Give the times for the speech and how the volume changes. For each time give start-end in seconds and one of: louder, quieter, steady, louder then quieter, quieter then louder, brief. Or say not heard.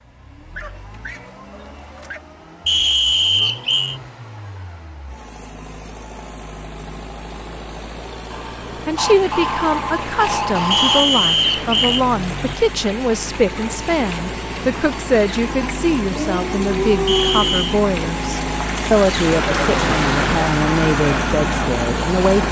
8.8-22.4 steady.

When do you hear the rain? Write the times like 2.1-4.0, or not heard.
9.1-22.4.